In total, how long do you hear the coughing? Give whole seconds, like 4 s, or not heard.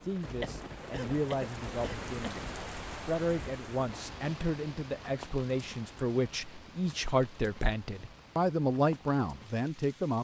2 s.